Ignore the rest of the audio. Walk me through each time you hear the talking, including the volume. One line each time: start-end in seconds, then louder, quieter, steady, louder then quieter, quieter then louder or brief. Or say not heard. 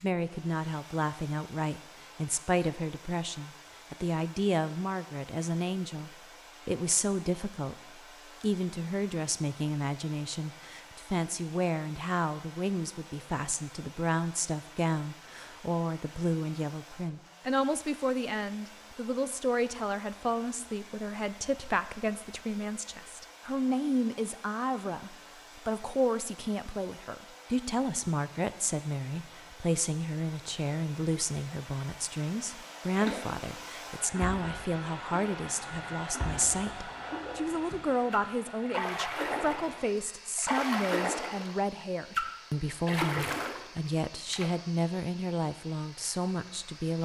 0.0-47.0 steady.